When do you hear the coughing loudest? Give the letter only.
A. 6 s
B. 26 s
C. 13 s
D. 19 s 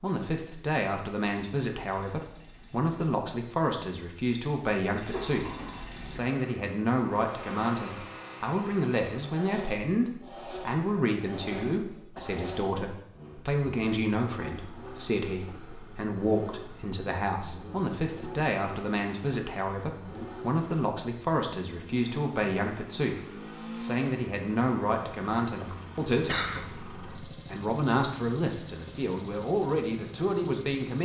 B.